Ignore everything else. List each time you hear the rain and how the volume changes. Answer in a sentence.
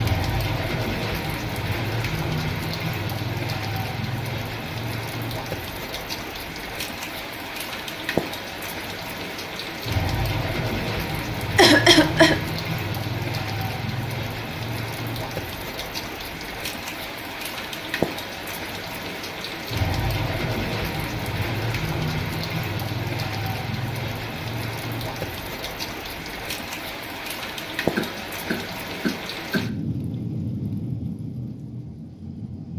You can hear the rain from 0.0 to 32.7 s, at a steady volume.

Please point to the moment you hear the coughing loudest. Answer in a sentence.
The volume of the coughing peaks at 12 seconds.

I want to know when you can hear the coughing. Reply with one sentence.
The coughing can be heard from 11.6 to 12.4 s and from 27.9 to 29.7 s.